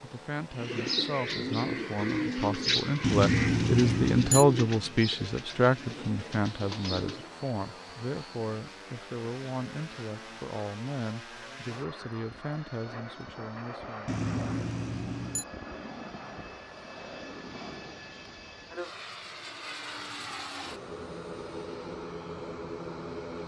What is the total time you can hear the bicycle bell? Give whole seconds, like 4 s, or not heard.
3 s.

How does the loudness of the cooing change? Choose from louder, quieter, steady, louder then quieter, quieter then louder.
quieter.